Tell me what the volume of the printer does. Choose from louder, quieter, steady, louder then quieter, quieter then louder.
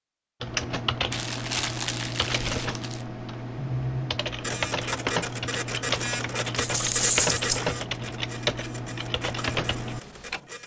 quieter.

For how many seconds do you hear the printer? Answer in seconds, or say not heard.
6 s.